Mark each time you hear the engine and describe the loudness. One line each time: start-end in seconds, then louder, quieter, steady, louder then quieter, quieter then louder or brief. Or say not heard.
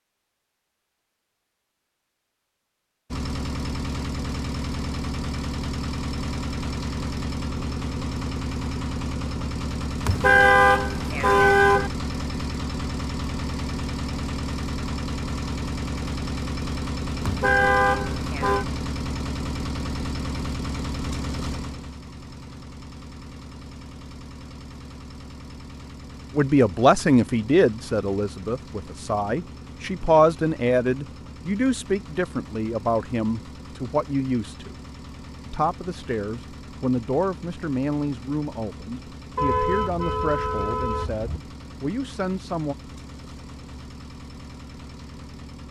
3.1-45.6 quieter.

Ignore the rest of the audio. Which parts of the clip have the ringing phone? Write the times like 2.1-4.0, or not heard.
not heard.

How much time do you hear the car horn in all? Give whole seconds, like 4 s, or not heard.
5 s.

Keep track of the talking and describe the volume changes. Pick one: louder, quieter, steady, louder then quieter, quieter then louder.
quieter.